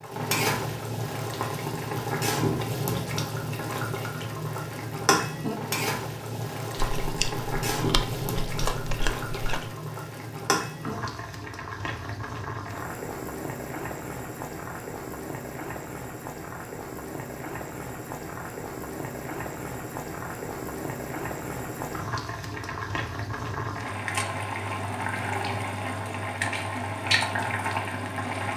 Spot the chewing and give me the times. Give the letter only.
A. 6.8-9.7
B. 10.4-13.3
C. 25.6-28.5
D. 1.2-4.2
A.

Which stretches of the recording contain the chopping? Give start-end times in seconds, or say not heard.
not heard.